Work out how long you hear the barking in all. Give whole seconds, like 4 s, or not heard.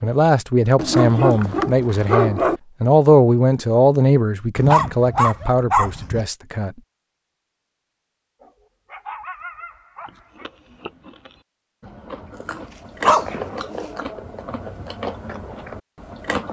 7 s.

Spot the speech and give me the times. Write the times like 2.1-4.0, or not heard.
0.0-6.8.